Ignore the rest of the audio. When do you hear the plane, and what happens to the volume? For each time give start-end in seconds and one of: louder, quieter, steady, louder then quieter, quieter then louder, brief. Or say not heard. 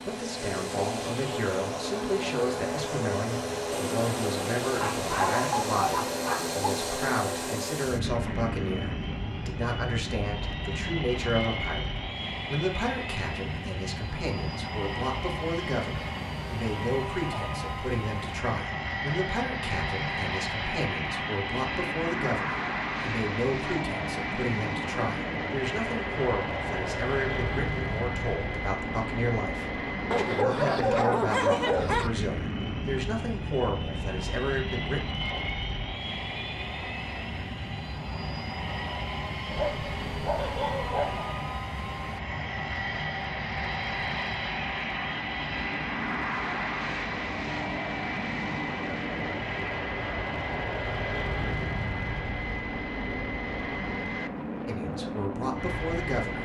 0.0-56.4 steady.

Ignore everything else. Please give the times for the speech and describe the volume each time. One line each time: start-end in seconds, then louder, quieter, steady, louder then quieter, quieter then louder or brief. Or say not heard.
0.1-35.1 steady
54.6-56.4 brief.